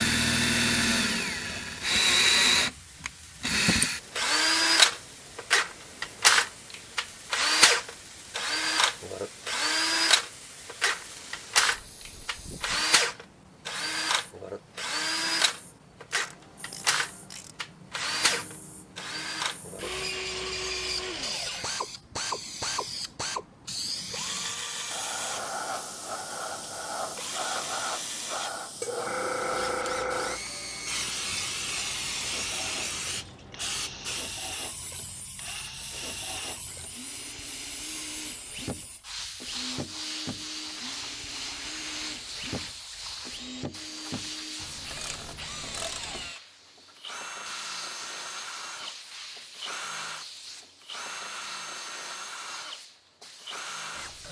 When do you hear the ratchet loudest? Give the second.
46 s.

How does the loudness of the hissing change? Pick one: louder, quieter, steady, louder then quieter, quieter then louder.
louder then quieter.